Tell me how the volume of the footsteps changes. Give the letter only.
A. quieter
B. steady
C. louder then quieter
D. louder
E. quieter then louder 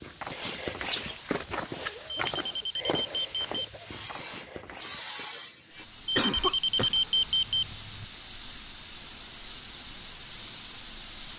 A.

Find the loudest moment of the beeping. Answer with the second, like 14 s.
7 s.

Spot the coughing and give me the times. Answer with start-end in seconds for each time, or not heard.
1.8-4.0, 6.2-7.0.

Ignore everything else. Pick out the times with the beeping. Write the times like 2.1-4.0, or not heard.
2.1-4.1, 6.0-8.1.